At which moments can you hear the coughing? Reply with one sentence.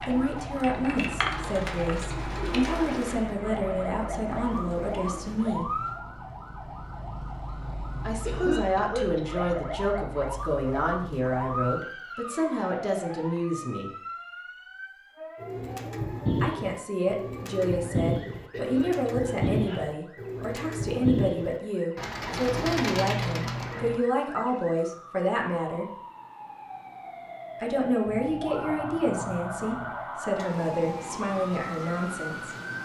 The coughing can be heard from 8.2 to 9.4 s and from 18.5 to 19.8 s.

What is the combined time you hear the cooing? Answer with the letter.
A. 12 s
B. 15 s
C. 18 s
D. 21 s
A.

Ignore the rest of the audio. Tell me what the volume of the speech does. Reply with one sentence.
The volume of the speech stays about the same.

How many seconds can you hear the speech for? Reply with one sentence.
You can hear the speech for 26 seconds altogether.